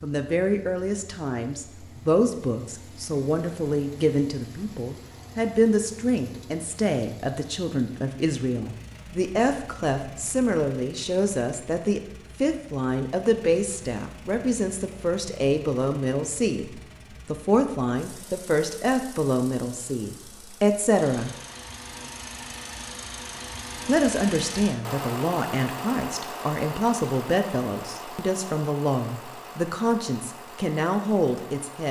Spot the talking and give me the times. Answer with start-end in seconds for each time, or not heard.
0.0-21.3, 23.9-31.8.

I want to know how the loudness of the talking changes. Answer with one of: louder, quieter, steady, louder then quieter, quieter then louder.
steady.